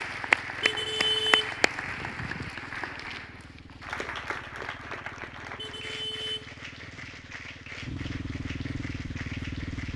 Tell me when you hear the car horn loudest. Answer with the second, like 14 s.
1 s.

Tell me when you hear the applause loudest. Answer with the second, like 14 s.
1 s.